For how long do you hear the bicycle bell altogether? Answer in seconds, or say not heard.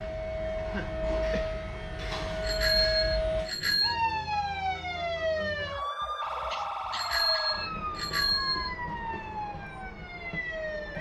3 s.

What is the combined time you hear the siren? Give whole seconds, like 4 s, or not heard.
11 s.